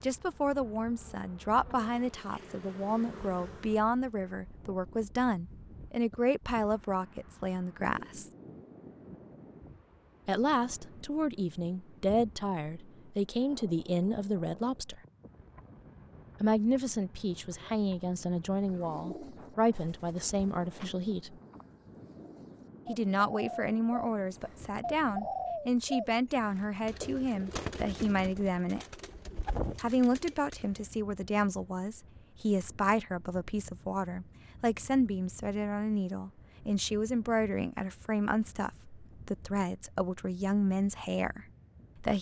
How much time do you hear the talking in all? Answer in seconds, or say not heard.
36 s.